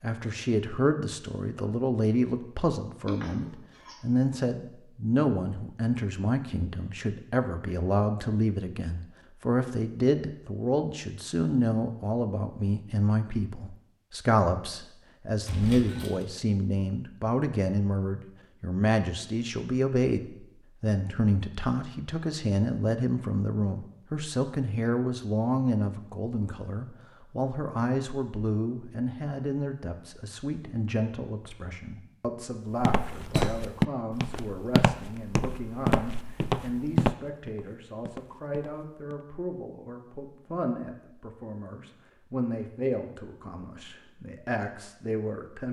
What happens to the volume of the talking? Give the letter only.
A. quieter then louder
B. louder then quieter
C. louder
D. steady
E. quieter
E.